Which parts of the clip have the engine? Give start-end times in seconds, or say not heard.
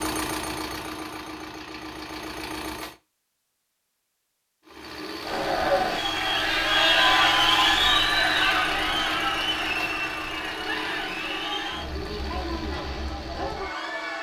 0.0-3.0, 4.7-14.1.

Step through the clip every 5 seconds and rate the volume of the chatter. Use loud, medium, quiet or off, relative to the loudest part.
off, loud, medium.